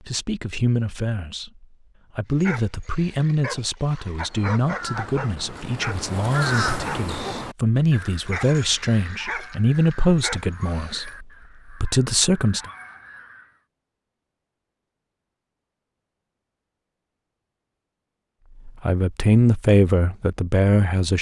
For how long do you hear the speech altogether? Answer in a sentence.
You can hear the speech for 15 seconds altogether.